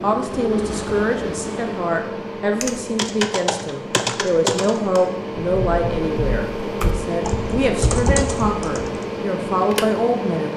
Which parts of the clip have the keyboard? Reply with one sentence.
The keyboard can be heard from 2.6 to 9.1 s.